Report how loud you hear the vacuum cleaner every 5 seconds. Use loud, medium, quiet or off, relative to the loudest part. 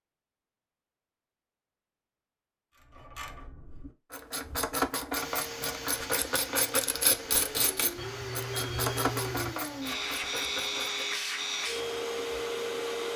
off, medium, loud.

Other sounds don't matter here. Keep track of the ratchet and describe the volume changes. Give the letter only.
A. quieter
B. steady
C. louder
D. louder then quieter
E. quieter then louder
D.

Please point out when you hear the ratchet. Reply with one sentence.
You can hear the ratchet from 2.8 to 11.2 s.